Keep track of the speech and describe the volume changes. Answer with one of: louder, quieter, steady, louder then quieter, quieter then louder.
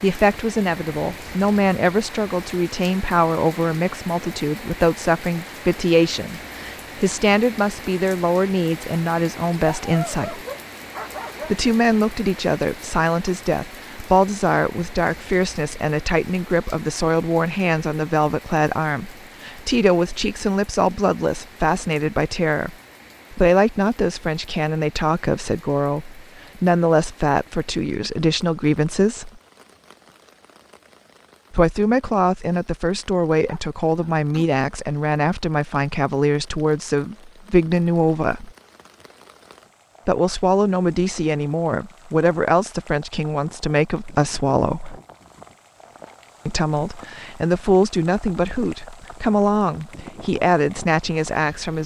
steady.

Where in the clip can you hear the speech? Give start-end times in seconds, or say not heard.
0.0-10.4, 11.4-29.3, 31.5-38.5, 40.0-45.0, 46.5-51.8.